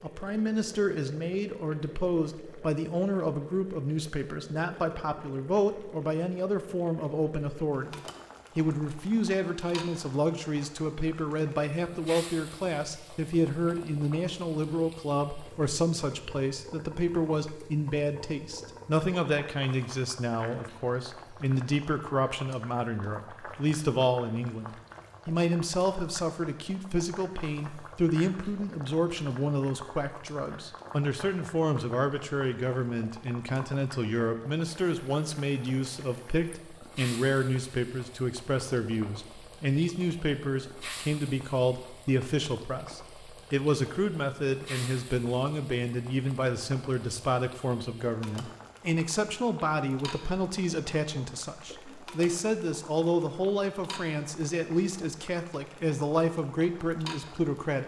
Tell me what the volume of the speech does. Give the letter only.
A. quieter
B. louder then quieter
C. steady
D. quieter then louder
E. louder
C.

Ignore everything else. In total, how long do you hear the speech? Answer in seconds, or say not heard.
58 s.